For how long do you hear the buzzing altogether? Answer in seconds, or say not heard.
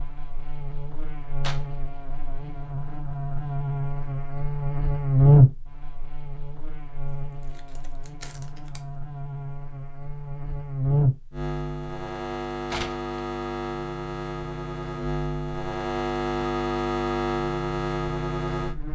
19 s.